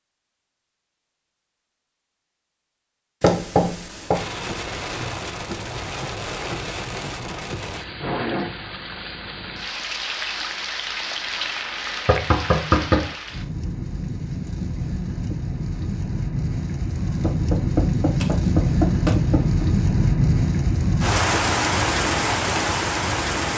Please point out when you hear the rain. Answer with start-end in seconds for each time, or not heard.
4.1-23.5.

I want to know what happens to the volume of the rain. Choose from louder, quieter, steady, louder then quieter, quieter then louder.
louder.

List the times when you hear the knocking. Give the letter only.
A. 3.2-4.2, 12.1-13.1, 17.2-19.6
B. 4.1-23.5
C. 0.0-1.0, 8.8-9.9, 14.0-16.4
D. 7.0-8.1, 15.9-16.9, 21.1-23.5
A.